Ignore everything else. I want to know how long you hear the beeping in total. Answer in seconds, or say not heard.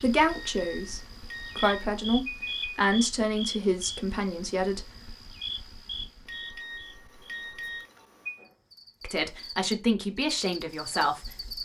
5 s.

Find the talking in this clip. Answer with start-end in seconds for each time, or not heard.
0.0-4.9, 9.0-11.6.